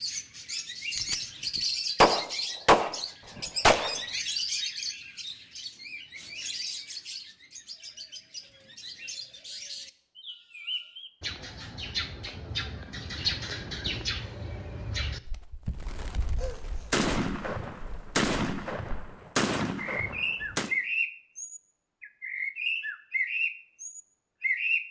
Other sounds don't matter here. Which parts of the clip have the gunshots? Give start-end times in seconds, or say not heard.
0.9-4.0, 16.4-20.7.